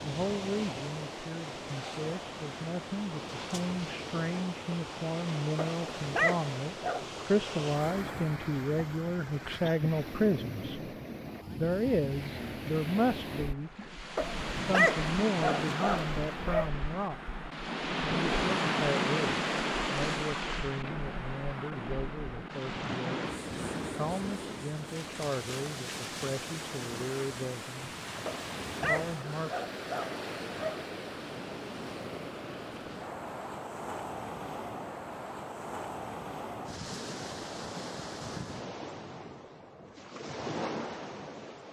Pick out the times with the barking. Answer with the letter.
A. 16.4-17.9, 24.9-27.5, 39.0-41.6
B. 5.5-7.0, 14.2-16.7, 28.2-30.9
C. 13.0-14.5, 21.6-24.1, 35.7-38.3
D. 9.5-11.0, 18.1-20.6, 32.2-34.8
B.